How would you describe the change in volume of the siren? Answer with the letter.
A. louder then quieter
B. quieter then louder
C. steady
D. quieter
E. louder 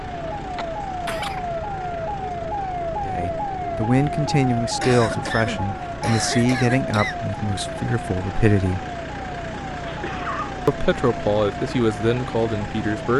D.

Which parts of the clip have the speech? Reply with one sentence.
You can hear the speech from 3.0 to 8.8 s and from 10.7 to 13.1 s.